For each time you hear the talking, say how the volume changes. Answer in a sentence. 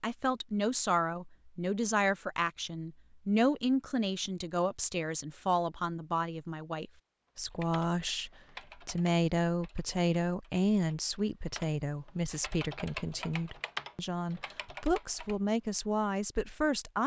The talking can be heard from 0.0 to 17.0 s, at a steady volume.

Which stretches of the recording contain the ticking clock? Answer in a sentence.
You can't hear the ticking clock here.